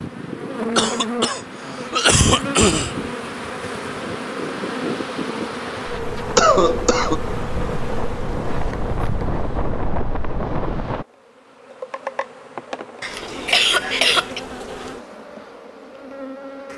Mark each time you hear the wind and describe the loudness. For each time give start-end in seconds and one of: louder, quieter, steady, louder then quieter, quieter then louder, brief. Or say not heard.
0.0-11.1 louder.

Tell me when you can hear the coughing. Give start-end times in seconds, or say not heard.
0.8-3.1, 6.3-7.2, 13.0-14.4.